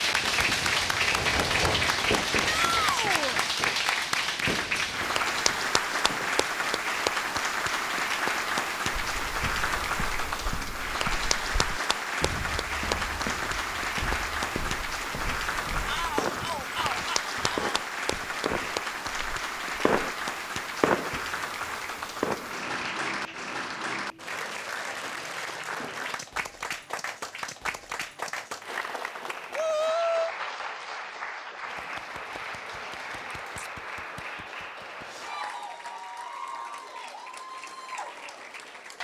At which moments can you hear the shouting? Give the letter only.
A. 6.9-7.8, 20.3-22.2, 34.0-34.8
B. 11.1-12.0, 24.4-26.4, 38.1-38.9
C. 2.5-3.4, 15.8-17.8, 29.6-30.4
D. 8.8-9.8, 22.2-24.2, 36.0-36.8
C.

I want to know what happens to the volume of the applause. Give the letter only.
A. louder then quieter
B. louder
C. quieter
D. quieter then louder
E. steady
C.